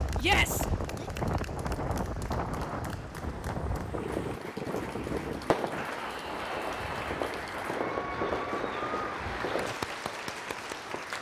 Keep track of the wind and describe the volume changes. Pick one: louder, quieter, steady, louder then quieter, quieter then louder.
quieter.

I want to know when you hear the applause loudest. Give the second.
9 s.